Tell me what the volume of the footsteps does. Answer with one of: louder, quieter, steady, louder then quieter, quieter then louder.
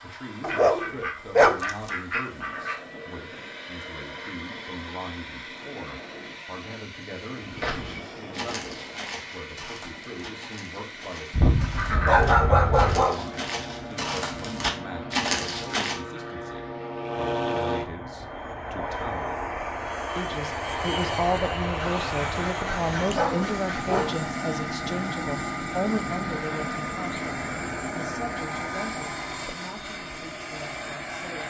quieter then louder.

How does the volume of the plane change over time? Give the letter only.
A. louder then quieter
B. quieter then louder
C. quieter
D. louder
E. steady
D.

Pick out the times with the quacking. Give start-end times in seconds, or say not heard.
0.5-2.8, 11.3-13.1, 21.8-24.2.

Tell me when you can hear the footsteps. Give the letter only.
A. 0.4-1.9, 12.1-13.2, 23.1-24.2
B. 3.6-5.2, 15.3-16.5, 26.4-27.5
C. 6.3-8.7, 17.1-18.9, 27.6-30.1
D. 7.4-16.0
D.